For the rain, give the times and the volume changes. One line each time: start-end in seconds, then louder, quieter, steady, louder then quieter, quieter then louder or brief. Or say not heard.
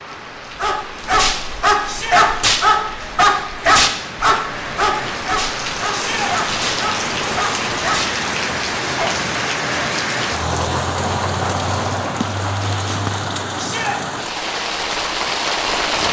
0.0-16.0 louder.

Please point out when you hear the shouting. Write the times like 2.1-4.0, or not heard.
1.9-2.3, 5.9-6.3, 13.6-14.0.